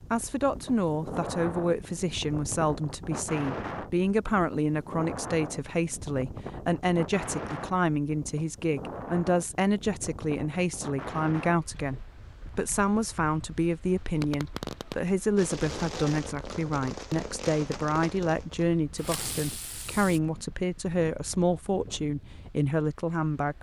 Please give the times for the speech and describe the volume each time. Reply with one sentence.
The speech can be heard from 0.1 to 23.5 s, at a steady volume.